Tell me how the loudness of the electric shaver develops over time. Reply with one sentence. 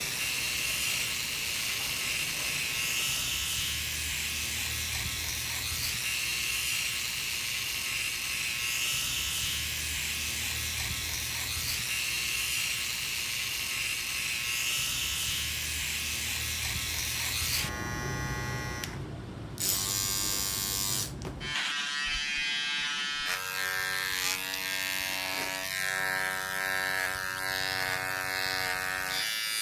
The volume of the electric shaver stays about the same.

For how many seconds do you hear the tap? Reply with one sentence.
You can hear the tap for 3 seconds altogether.